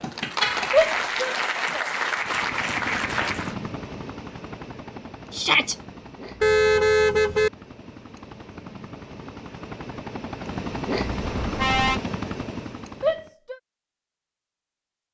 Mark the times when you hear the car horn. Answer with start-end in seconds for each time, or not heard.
0.4-0.9, 6.4-7.5, 11.2-12.0.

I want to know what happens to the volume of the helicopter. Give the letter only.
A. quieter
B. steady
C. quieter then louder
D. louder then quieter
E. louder
C.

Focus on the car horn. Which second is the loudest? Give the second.
7 s.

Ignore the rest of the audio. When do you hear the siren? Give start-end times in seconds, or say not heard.
not heard.